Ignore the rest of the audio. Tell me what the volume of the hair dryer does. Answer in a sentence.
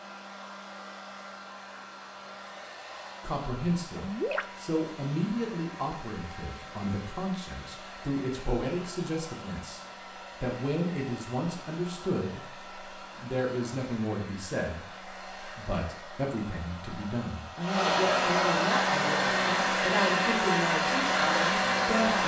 The loudness of the hair dryer goes up.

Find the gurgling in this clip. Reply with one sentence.
You can hear the gurgling from 3.9 to 4.5 s.